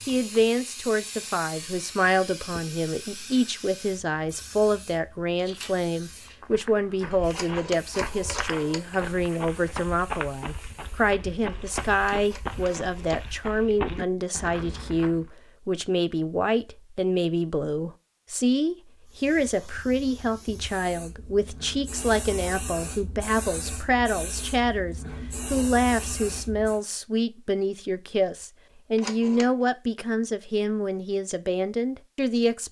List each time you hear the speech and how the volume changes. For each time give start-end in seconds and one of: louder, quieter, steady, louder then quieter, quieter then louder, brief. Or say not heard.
0.1-32.6 steady.